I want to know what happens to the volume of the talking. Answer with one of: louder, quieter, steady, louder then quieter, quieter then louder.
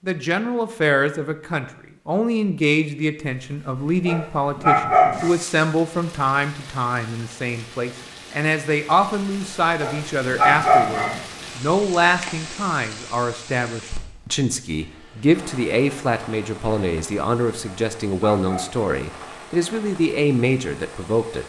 steady.